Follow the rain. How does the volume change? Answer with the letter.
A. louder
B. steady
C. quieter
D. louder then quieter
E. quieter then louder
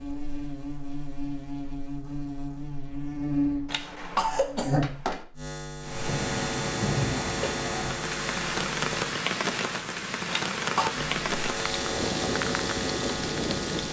B.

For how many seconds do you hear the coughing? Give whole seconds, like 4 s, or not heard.
2 s.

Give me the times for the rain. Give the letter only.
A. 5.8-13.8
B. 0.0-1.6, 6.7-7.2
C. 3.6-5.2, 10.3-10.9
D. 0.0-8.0
A.